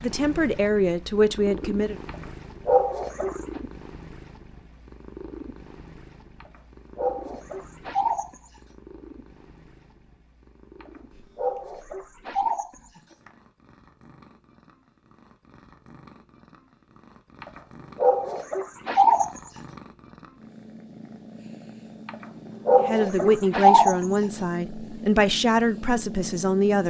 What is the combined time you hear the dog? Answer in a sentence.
The dog can be heard for 10 seconds in total.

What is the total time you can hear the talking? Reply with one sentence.
The talking can be heard for 6 seconds in total.